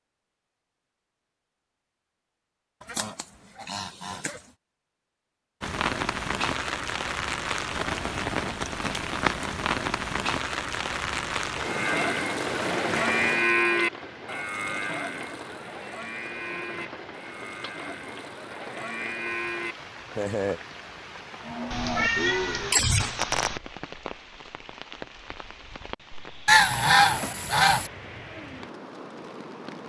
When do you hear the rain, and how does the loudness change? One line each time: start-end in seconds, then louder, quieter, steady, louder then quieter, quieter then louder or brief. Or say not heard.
5.6-29.8 quieter.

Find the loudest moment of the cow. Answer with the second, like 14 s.
14 s.